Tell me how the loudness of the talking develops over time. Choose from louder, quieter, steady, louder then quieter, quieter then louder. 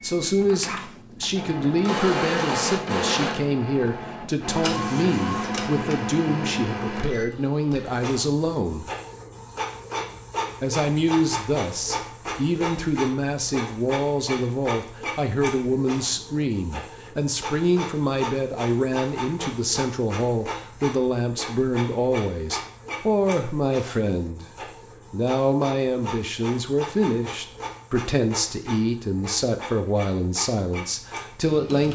steady.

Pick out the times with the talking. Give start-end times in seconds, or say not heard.
0.0-8.9, 10.6-24.4, 25.1-31.8.